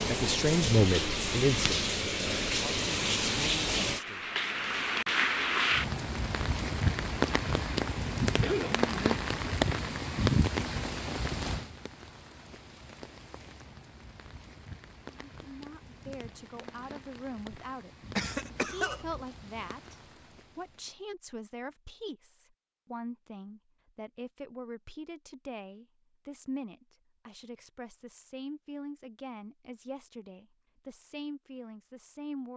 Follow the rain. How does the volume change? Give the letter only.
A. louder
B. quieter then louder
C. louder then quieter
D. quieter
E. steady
D.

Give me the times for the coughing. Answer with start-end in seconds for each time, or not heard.
8.4-8.8, 18.1-19.2.